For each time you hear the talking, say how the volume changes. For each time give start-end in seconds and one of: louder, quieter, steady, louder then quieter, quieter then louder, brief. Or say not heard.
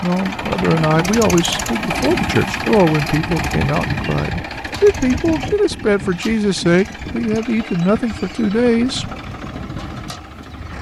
0.0-9.2 steady.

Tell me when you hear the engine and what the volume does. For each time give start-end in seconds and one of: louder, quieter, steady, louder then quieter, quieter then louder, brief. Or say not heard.
0.0-10.7 quieter.